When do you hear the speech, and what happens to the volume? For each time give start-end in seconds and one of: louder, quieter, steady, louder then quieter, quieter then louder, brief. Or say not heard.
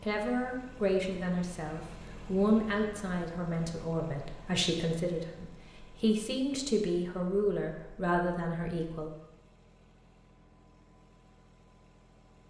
0.0-9.1 steady.